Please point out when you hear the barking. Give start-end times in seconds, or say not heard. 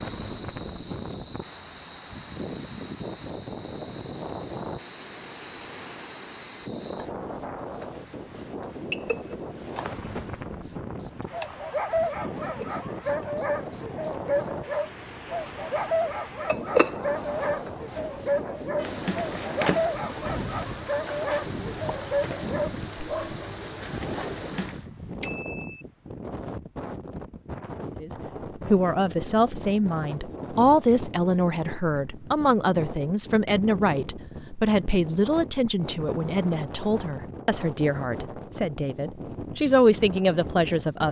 11.3-23.4.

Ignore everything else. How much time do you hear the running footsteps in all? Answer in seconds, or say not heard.
not heard.